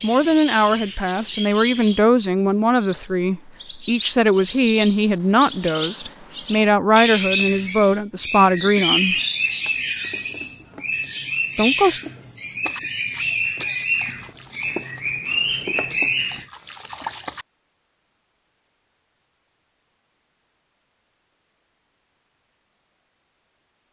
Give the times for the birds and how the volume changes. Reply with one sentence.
You can hear the birds from 0.0 to 16.4 s, getting louder.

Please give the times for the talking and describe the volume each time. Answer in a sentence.
The talking can be heard from 0.0 to 9.2 s, at a steady volume; and briefly from 11.6 to 12.0 s.